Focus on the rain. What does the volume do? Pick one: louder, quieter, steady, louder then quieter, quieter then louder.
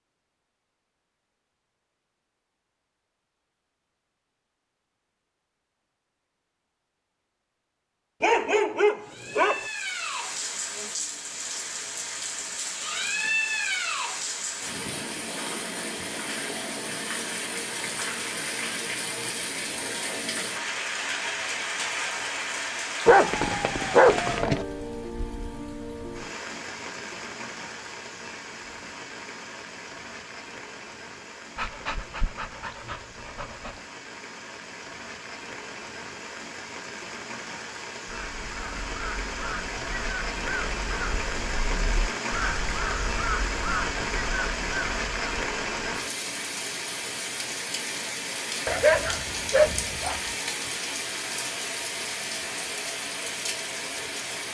quieter then louder.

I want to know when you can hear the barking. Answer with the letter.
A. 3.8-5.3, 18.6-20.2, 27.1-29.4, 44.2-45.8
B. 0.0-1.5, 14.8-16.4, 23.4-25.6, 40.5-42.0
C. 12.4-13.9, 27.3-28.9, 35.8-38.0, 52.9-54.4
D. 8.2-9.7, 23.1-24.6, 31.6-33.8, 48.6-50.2
D.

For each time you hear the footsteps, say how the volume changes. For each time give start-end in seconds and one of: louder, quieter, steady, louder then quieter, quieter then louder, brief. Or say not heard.
not heard.